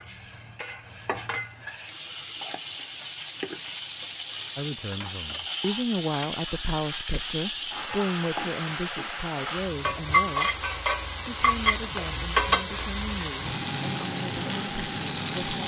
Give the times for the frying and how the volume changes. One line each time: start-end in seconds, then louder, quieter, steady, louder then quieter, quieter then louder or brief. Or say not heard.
0.0-15.6 louder.